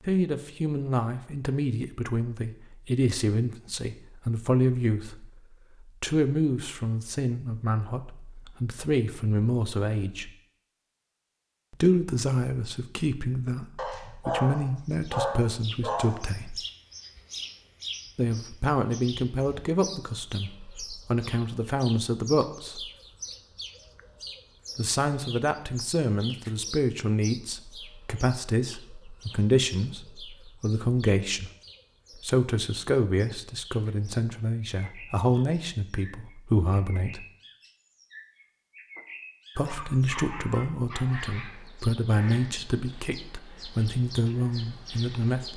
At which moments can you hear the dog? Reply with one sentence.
You can hear the dog from 13.8 to 16.1 s and from 39.5 to 41.5 s.